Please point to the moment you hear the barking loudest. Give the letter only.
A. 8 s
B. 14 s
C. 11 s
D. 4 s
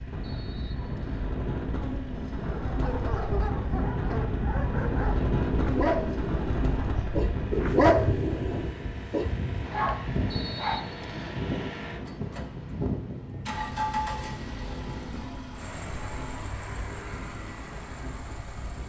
A.